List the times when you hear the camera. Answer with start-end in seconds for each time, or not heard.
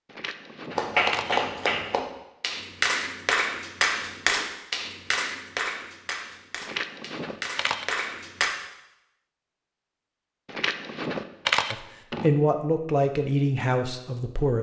0.1-1.9, 6.6-7.8, 10.4-12.3.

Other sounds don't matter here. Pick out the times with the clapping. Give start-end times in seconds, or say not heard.
0.7-8.5.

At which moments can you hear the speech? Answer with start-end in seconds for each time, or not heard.
11.7-14.5.